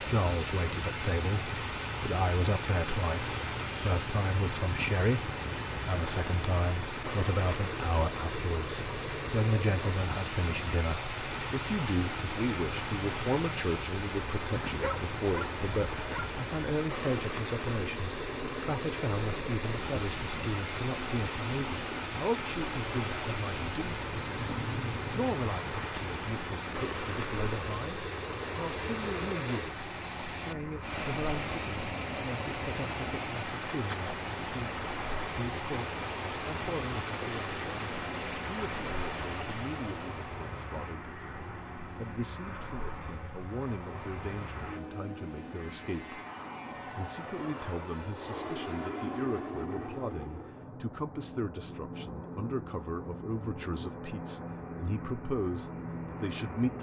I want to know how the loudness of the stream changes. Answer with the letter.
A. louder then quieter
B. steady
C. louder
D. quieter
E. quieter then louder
B.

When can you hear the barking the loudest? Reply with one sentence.
The volume of the barking peaks at 15 seconds.